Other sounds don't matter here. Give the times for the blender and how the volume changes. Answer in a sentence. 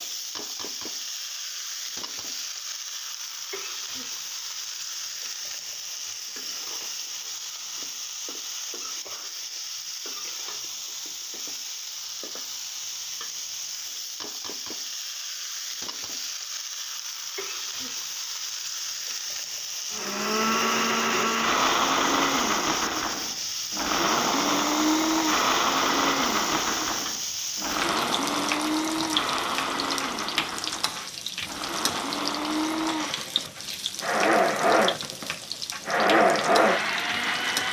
The blender can be heard from 19.9 to 37.6 s, getting quieter then louder.